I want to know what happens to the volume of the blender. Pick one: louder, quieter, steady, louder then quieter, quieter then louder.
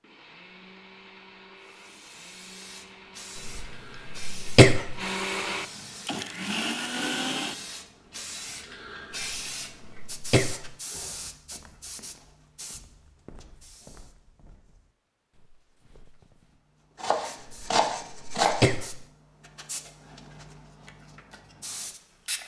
louder.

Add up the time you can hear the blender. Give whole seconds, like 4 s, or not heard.
8 s.